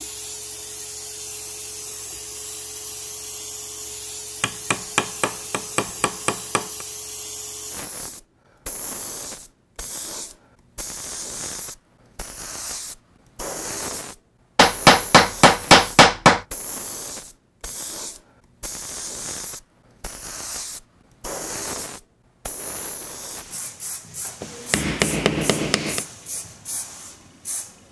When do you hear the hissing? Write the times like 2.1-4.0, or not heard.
0.0-27.8.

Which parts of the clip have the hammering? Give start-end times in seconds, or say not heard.
4.4-6.7, 14.6-16.4, 24.4-26.0.